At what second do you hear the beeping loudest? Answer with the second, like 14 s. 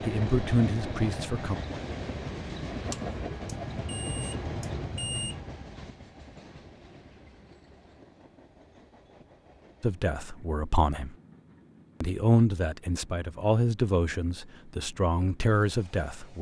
5 s.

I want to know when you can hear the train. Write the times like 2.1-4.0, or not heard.
0.0-16.3.